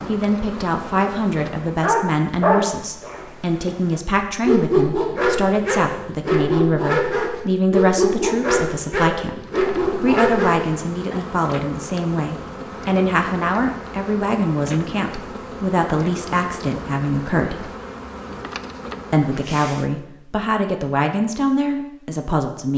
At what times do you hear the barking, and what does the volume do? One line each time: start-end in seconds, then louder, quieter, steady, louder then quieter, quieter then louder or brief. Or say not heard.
1.6-11.2 steady.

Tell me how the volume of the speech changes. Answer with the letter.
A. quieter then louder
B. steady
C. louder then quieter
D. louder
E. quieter
B.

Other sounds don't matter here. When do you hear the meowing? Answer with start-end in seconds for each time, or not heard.
not heard.